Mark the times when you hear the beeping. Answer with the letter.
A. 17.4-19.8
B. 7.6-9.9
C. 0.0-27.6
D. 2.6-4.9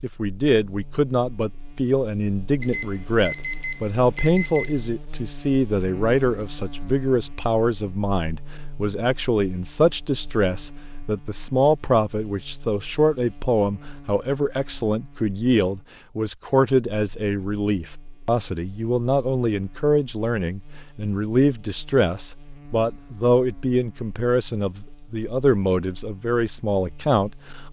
D.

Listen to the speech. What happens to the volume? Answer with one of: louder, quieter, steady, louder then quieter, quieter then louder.
steady.